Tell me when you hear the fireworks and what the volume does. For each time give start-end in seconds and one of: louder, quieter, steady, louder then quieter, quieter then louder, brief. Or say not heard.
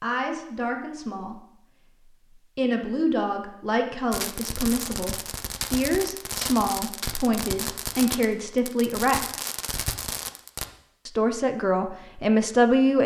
4.1-10.7 steady.